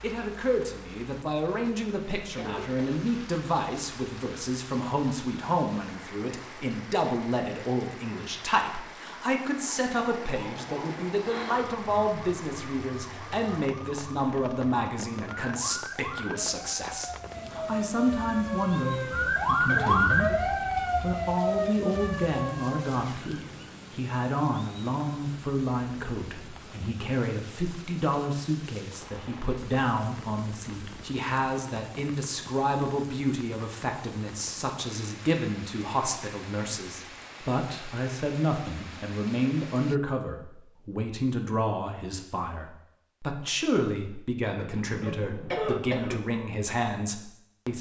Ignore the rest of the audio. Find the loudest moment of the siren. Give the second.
20 s.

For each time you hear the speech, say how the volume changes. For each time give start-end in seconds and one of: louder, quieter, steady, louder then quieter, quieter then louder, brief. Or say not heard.
0.0-47.7 steady.